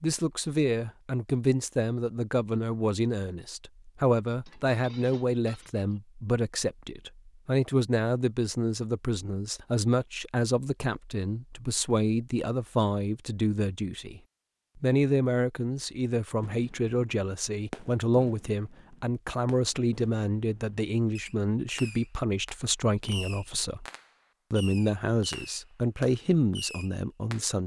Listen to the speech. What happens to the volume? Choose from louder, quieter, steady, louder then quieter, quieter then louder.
steady.